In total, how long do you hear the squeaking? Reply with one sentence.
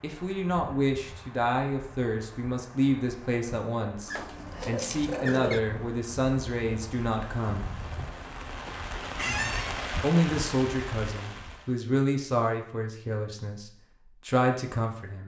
You can hear the squeaking for 2 seconds altogether.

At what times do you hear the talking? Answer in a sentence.
The talking can be heard from 0.0 to 7.7 s and from 10.0 to 15.2 s.